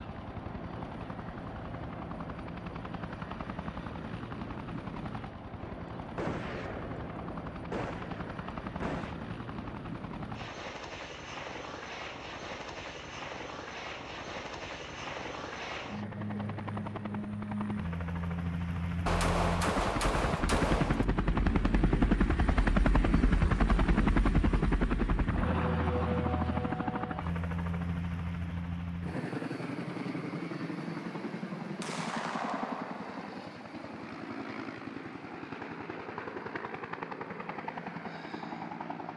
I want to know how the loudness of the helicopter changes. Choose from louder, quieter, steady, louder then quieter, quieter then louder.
louder then quieter.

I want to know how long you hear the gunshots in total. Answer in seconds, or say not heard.
7 s.